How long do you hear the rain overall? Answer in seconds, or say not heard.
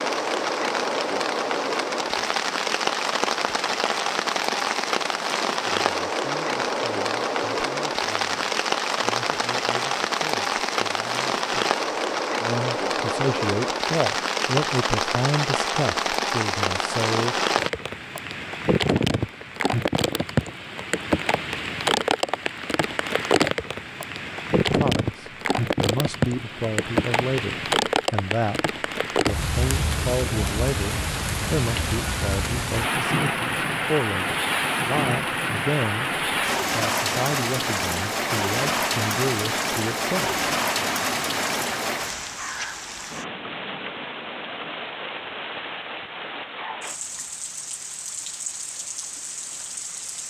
50 s.